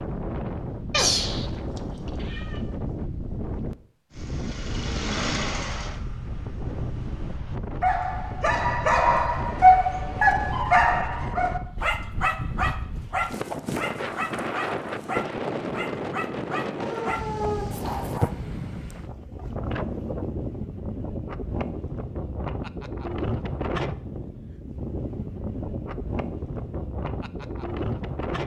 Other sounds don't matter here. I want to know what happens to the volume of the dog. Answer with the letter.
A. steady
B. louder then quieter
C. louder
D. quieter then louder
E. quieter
E.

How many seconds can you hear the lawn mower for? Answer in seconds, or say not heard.
3 s.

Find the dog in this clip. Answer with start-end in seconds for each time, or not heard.
7.8-18.3.